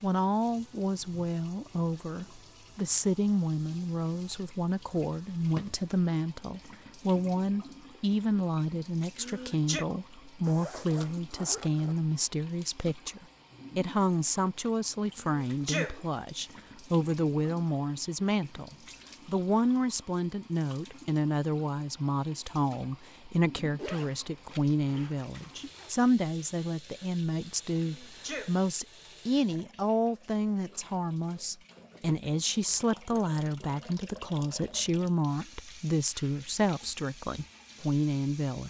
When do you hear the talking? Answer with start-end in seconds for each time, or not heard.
0.0-38.6.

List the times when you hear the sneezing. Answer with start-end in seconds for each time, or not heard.
9.2-9.8, 15.4-16.0, 27.8-28.6.